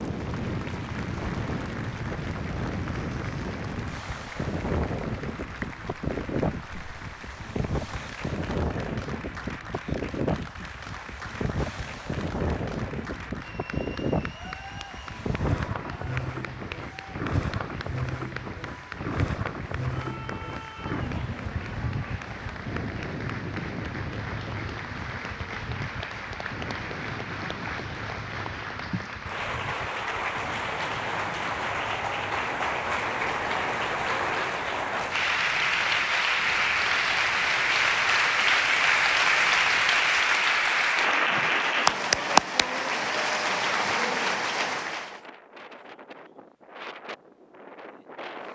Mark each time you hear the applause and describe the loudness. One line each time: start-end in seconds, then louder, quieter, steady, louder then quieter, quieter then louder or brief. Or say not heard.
0.0-45.2 louder.